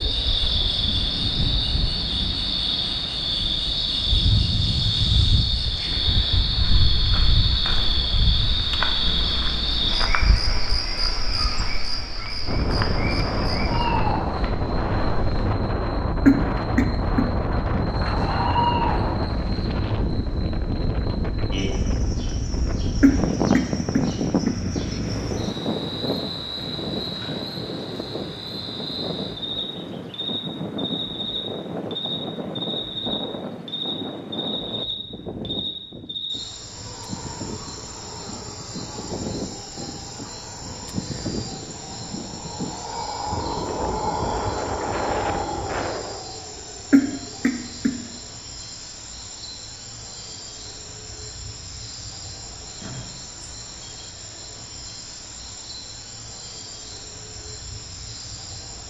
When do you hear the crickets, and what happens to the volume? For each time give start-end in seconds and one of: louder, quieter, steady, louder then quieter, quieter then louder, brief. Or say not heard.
0.0-58.8 quieter.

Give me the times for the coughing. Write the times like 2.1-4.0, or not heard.
16.2-17.3, 23.0-24.6, 46.9-48.0.